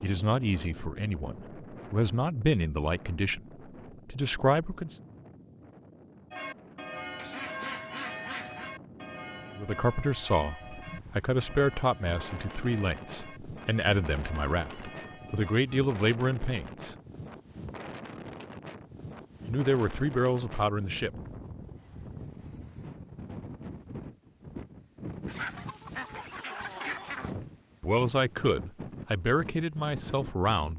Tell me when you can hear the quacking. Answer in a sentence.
The quacking can be heard from 7.2 to 8.7 s and from 25.2 to 27.4 s.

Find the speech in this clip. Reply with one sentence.
The speech can be heard from 0.0 to 3.4 s, from 4.0 to 5.0 s, from 9.6 to 16.9 s, from 19.4 to 21.1 s and from 27.8 to 30.7 s.